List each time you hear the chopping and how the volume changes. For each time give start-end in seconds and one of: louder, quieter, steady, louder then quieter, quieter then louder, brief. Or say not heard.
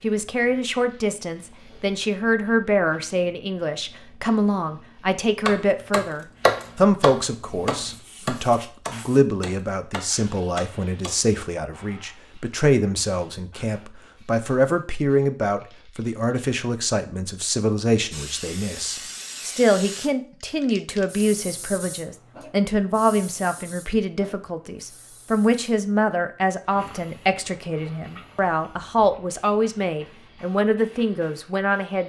5.5-11.2 quieter.